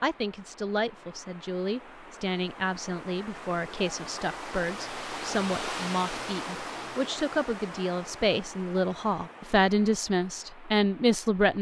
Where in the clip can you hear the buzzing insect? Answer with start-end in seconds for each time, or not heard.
not heard.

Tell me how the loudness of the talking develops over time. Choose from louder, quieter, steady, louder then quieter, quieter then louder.
louder.